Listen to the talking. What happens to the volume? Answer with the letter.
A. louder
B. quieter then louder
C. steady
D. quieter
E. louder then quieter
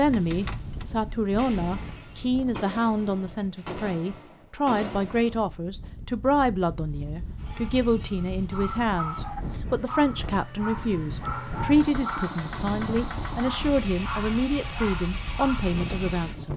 C.